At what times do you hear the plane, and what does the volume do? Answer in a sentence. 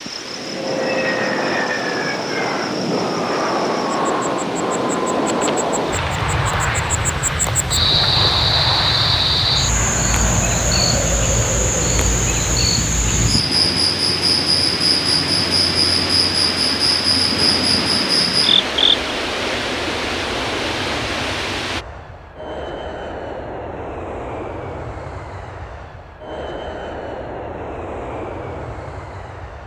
The plane can be heard from 0.0 to 29.6 s, getting quieter.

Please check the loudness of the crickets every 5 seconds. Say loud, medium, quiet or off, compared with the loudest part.
quiet, loud, loud, loud, off, off.